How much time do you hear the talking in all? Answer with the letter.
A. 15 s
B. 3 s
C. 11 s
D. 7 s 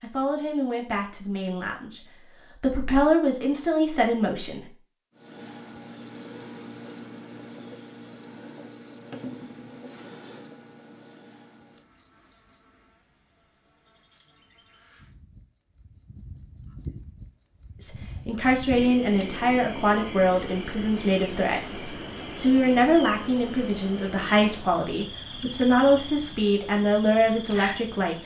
A.